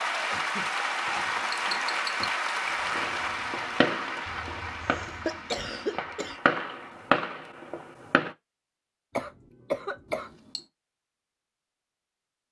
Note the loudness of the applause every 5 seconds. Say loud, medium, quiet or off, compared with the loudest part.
loud, quiet, off.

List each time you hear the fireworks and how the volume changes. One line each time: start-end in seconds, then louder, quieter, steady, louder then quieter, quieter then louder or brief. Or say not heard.
2.9-8.3 quieter then louder.